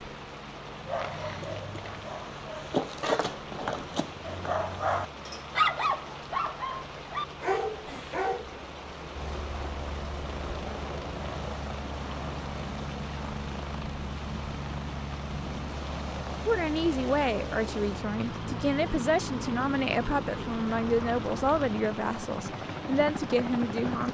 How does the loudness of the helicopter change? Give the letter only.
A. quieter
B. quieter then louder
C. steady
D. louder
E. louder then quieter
D.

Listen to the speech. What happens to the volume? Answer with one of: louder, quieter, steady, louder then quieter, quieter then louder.
steady.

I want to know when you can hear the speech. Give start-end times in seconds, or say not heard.
16.4-24.0.